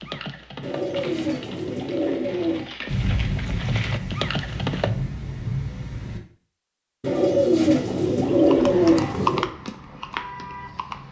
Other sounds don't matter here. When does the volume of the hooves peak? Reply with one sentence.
The volume of the hooves peaks at 9 seconds.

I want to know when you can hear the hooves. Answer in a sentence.
The hooves can be heard from 0.0 to 4.9 s and from 8.2 to 11.0 s.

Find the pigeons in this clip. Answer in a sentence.
You can hear the pigeons from 0.6 to 2.6 s and from 7.0 to 9.4 s.